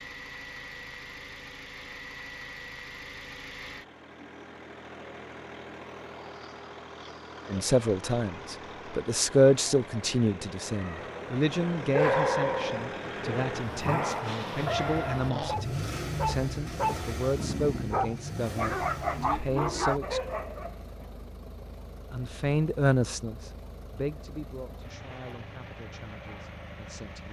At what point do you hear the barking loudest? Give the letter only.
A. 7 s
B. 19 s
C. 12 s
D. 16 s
C.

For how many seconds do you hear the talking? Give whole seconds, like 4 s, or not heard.
18 s.